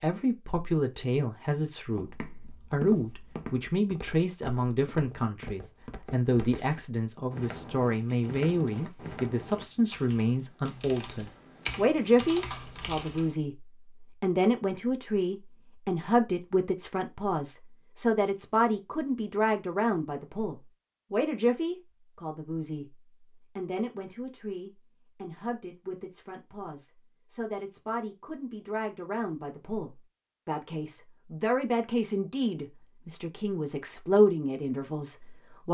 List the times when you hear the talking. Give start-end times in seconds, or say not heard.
0.0-35.6.